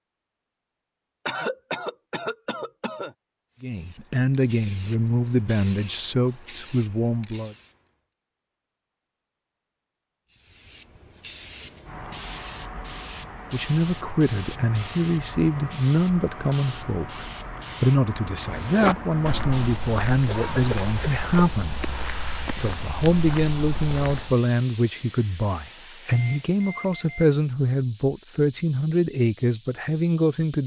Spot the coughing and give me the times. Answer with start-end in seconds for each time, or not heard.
1.2-3.1, 20.2-21.5.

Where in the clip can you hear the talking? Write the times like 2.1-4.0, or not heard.
3.6-7.5, 13.5-21.8, 22.6-30.6.